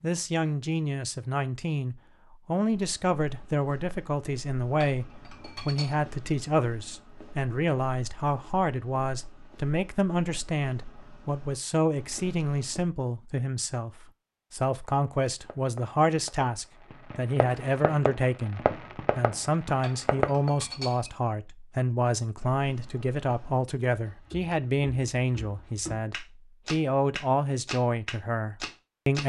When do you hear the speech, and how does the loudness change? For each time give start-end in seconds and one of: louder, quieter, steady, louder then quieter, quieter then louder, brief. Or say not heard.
0.0-29.2 steady.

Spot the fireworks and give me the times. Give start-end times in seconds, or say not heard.
14.8-20.5.